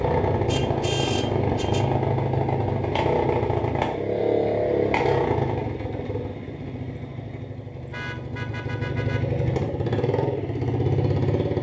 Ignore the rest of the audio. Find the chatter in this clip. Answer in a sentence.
You can't hear the chatter here.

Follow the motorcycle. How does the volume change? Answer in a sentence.
The loudness of the motorcycle goes down, then up.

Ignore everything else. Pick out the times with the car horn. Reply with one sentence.
You can hear the car horn from 0.5 to 1.9 s and from 7.9 to 9.4 s.